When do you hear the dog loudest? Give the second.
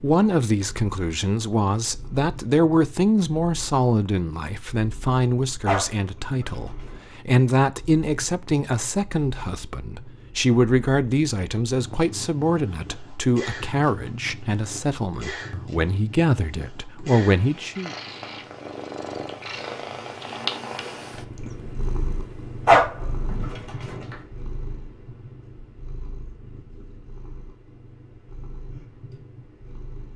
23 s.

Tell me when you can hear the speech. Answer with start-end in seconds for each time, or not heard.
0.0-17.9.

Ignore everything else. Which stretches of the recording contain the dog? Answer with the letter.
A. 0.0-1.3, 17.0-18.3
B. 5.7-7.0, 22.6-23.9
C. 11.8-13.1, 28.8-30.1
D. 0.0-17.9
B.